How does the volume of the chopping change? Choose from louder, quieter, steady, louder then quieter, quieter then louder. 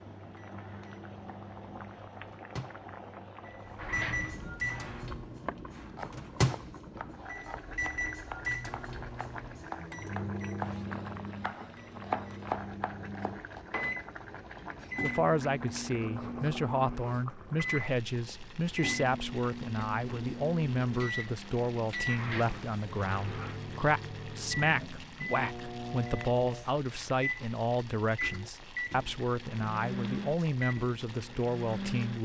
louder.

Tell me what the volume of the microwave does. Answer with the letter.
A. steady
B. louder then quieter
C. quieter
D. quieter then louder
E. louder
A.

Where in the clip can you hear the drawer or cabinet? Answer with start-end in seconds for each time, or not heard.
3.8-5.1, 13.2-14.8, 22.1-23.6.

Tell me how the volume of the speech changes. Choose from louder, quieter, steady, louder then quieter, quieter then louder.
steady.